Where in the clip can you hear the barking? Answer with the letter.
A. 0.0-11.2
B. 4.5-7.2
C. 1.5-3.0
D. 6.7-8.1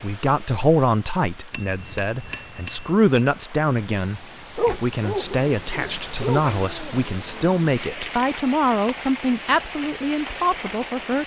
B.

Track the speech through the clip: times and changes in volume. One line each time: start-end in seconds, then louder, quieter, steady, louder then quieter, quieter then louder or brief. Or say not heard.
0.0-11.2 steady.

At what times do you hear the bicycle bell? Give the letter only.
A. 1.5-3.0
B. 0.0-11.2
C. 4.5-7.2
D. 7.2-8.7
A.